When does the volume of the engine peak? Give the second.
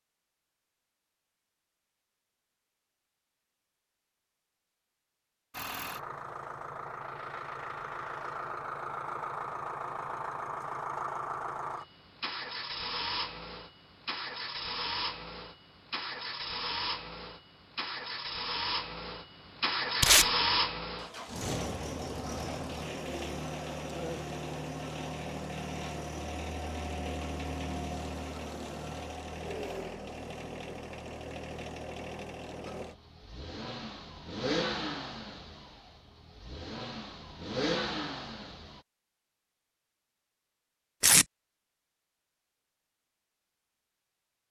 20 s.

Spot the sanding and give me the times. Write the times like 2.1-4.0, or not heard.
not heard.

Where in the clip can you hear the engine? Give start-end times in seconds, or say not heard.
5.5-38.8.